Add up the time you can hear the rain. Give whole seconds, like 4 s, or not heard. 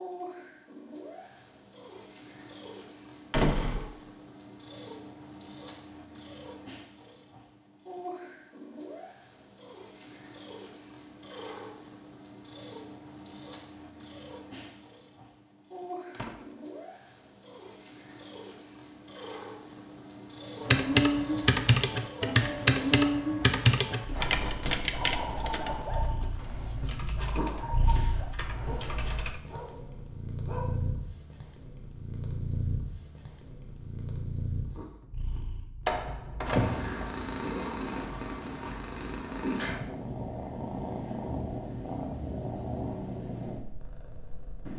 not heard.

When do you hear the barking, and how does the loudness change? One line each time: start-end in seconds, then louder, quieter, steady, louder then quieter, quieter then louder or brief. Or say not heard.
23.9-30.9 quieter.